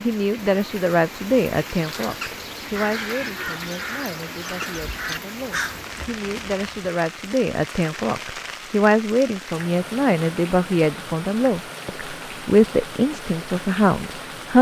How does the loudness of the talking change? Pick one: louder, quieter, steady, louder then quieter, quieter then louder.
quieter then louder.